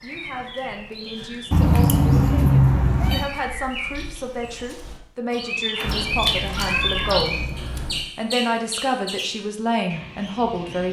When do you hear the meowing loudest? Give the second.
3 s.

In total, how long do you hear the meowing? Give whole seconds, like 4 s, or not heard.
4 s.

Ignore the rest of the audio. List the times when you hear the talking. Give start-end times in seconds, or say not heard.
0.0-7.4, 8.2-10.8.